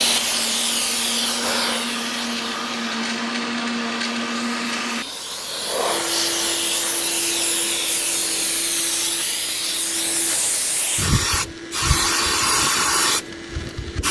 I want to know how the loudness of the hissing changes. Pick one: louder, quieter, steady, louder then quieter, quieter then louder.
quieter then louder.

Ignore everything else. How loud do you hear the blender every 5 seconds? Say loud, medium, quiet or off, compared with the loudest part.
loud, medium, medium.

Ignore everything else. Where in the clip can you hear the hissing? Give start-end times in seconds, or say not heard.
0.0-14.0.